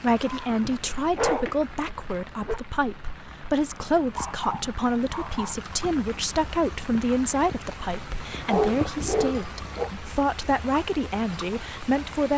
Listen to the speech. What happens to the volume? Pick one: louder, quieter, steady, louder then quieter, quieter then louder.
steady.